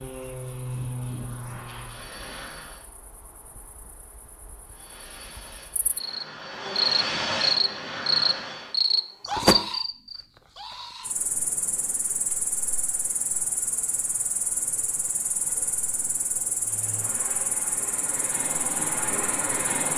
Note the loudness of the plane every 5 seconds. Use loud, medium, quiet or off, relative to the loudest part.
loud, loud, off, loud.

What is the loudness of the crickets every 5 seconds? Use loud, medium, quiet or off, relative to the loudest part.
quiet, loud, medium, medium.